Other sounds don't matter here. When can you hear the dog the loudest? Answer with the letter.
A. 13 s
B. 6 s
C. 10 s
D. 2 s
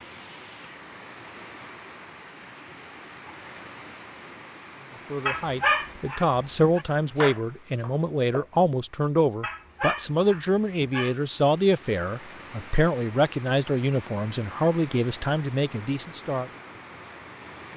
B.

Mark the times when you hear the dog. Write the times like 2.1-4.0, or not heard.
5.2-6.8, 9.4-11.2.